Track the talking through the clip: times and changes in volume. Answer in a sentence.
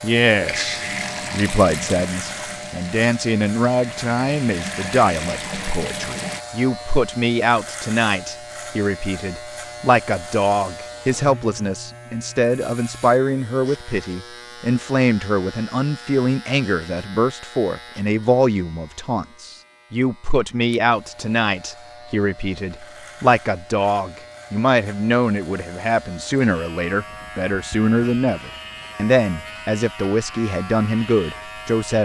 You can hear the talking from 0.0 to 32.0 s, at a steady volume.